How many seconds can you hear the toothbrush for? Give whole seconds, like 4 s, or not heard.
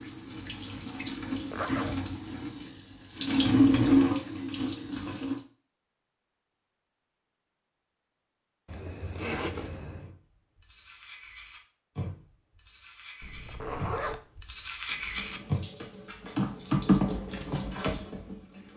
6 s.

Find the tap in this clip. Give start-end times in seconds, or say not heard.
0.0-5.4, 14.9-18.7.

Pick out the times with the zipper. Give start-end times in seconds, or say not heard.
1.5-2.0, 8.7-10.1, 13.2-14.2.